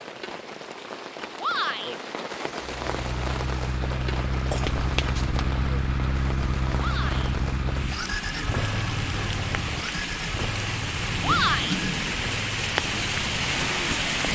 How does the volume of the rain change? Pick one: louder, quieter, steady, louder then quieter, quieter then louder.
louder.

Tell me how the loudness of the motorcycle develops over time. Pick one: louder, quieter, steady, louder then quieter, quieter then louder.
quieter.